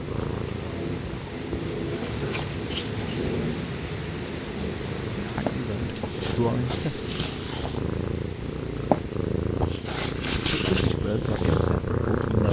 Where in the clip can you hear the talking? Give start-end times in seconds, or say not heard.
5.2-7.0, 10.4-12.4.